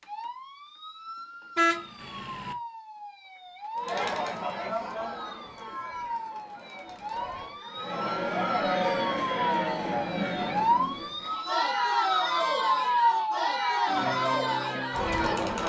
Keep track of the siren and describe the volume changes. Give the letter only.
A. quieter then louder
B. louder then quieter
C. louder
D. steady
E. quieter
C.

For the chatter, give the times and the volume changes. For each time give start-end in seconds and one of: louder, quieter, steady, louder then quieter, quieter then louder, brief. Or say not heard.
3.8-15.6 louder.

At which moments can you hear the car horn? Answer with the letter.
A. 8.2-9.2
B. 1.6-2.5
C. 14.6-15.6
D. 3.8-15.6
B.